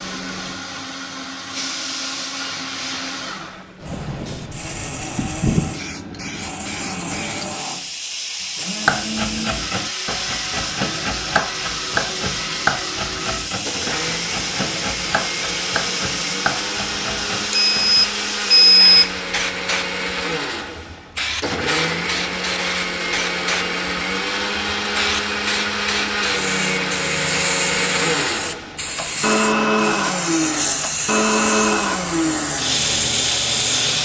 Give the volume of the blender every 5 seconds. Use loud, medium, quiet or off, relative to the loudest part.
medium, medium, medium, medium, loud, loud, loud.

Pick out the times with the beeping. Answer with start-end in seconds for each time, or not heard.
17.5-19.1.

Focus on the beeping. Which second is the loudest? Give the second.
19 s.